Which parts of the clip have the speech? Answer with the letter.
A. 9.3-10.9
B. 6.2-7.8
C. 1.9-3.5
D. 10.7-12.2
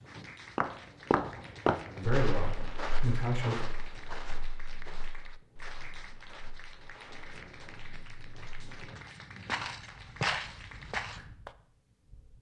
C.